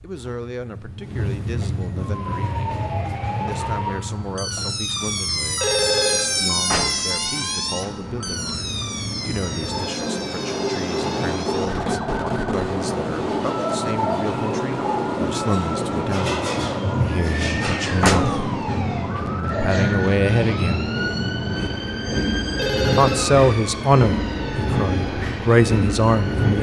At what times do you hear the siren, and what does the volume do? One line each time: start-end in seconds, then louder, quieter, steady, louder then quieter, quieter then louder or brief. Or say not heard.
1.9-26.5 quieter.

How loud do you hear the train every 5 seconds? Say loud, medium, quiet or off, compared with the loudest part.
medium, medium, loud, loud, loud, loud.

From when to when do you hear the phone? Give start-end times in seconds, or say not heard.
5.6-6.3, 9.6-11.3, 22.6-23.2.